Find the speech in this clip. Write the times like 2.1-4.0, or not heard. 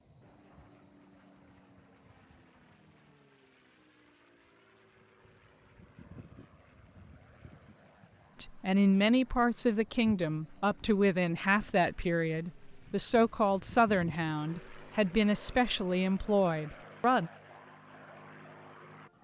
8.4-17.3.